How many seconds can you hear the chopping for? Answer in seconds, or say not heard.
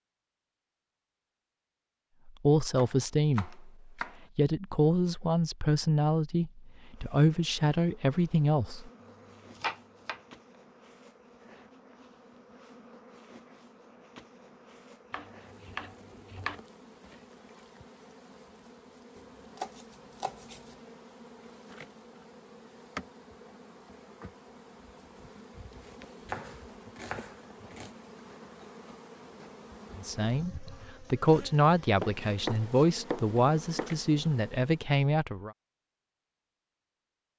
9 s.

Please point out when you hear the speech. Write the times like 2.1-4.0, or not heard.
2.2-3.6, 4.3-8.9, 29.9-35.5.